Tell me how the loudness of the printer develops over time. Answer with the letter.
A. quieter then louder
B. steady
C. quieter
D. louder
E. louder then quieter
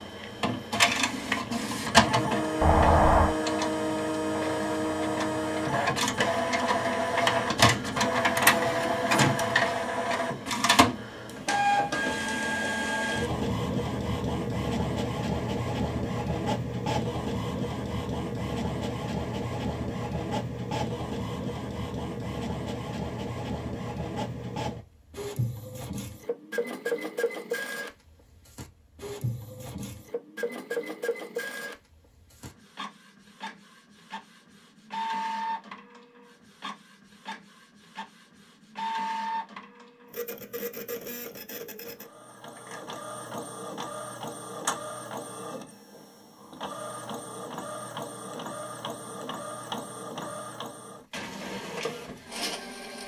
C.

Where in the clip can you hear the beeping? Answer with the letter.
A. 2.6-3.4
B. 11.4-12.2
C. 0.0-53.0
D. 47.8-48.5
A.